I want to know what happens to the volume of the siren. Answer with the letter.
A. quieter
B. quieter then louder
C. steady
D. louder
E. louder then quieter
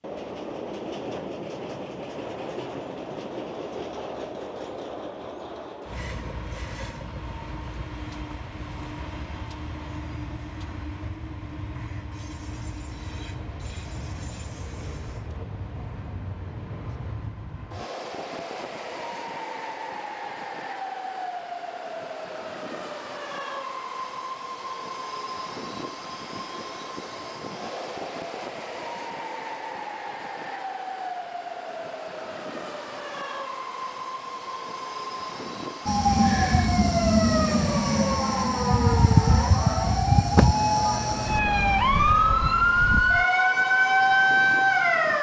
C.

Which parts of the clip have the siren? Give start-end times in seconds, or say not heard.
35.9-45.1.